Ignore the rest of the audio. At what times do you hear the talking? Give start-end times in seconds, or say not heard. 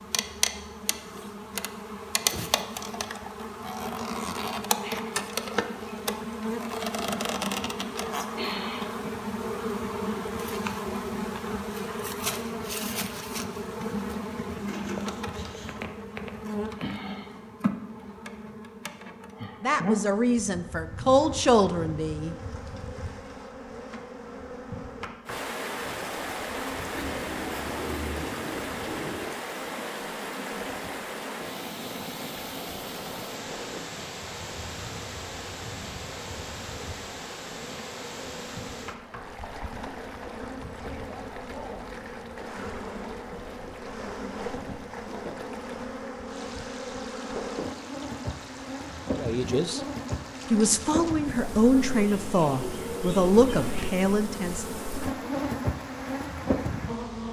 19.6-22.4, 49.1-49.8, 50.5-54.6.